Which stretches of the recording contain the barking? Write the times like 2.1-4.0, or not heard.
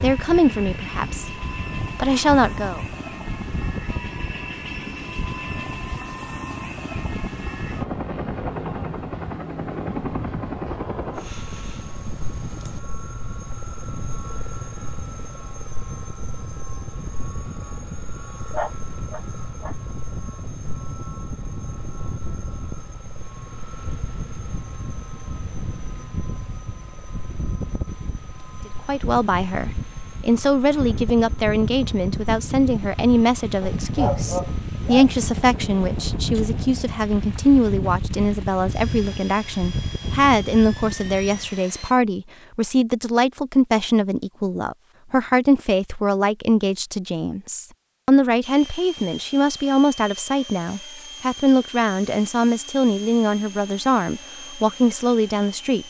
18.5-19.8, 33.6-35.1.